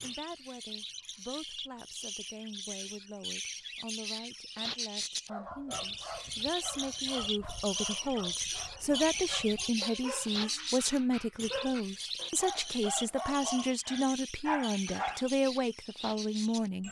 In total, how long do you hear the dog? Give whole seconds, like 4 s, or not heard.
10 s.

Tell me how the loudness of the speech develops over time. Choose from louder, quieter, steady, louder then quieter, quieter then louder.
louder.